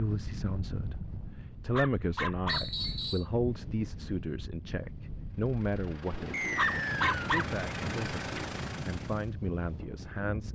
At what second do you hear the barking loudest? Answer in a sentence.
The loudest moment of the barking is at 7 seconds.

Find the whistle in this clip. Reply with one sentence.
You can hear the whistle from 2.5 to 3.2 s and from 6.3 to 7.3 s.